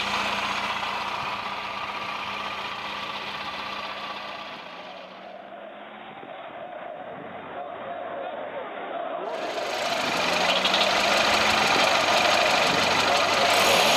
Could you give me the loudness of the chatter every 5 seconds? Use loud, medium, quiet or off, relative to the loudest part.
quiet, medium, loud.